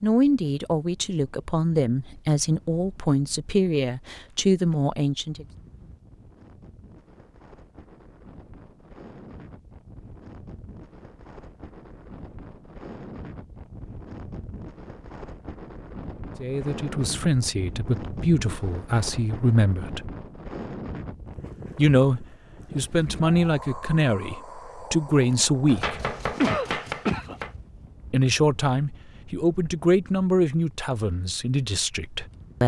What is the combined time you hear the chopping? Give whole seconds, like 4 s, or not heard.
2 s.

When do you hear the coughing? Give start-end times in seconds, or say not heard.
25.8-27.4.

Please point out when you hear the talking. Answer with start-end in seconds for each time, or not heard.
0.0-5.5, 16.4-20.1, 21.8-26.0, 28.1-32.6.